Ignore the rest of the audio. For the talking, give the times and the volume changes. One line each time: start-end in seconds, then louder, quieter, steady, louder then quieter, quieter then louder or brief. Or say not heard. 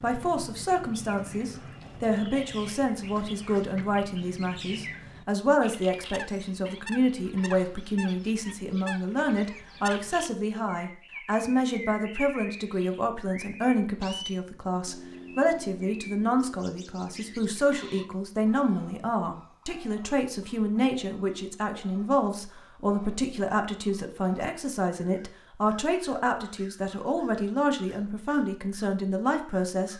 0.0-29.9 steady.